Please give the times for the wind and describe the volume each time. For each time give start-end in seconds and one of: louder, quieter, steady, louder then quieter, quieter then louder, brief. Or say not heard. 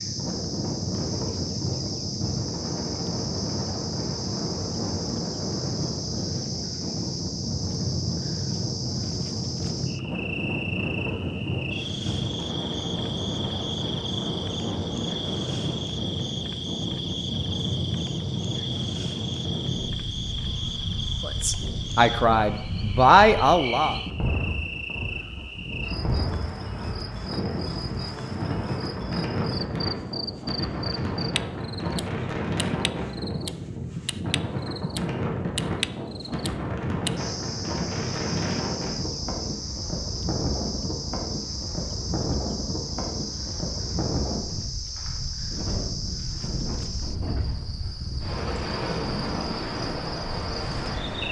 0.0-51.2 steady.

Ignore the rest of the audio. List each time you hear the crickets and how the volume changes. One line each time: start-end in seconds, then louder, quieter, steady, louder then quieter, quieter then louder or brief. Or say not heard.
0.0-51.2 steady.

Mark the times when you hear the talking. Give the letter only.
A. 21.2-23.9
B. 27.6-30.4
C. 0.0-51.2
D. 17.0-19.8
A.